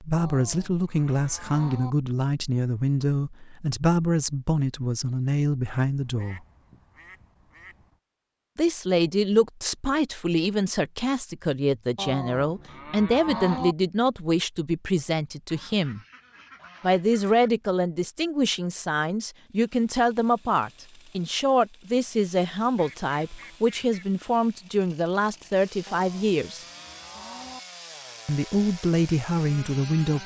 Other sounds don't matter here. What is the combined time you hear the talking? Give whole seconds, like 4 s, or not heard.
26 s.